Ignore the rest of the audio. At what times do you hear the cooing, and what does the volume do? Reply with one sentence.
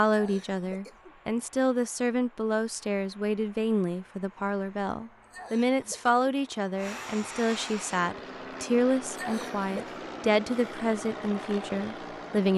The cooing can't be heard in this clip.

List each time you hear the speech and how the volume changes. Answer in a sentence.
The speech can be heard from 0.0 to 12.5 s, at a steady volume.